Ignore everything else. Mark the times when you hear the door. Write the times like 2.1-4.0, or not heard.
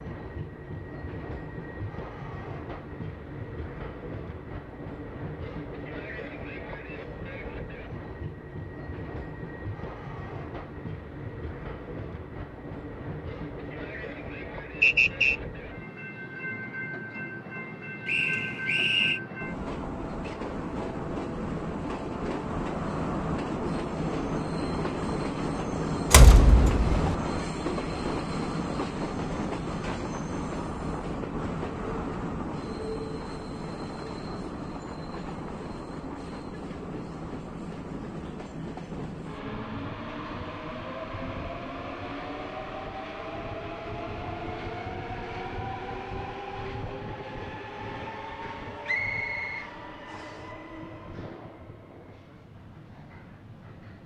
26.1-27.1.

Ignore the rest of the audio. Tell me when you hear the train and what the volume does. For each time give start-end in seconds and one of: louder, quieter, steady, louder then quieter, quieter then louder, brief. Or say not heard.
0.0-54.0 louder then quieter.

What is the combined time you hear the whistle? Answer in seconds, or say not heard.
3 s.